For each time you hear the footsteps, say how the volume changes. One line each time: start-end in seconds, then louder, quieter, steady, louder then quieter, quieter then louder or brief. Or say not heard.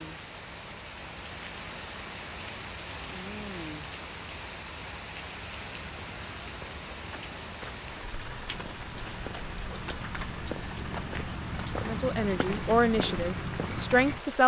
5.8-14.2 louder.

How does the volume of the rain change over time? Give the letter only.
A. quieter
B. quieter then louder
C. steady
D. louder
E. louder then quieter
C.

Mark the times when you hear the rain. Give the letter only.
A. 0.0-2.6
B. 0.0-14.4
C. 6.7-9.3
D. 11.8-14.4
B.